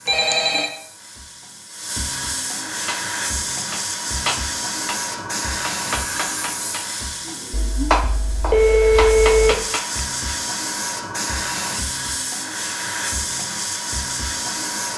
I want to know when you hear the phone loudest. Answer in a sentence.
The volume of the phone peaks at 9 seconds.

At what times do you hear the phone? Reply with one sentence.
The phone can be heard from 0.1 to 0.7 s and from 7.5 to 9.6 s.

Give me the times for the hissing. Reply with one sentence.
You can hear the hissing from 0.0 to 14.9 s.